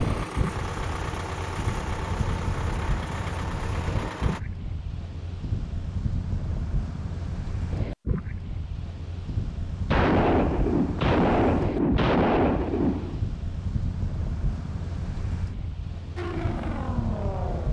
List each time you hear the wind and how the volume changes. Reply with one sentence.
You can hear the wind from 0.0 to 17.6 s, at a steady volume.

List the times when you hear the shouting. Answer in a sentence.
You can't hear the shouting here.